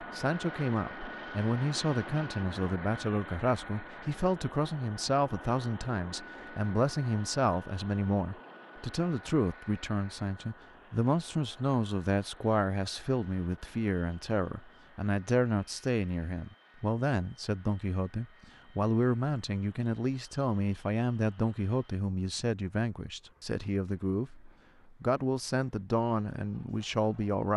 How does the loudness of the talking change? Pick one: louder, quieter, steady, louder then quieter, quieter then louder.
steady.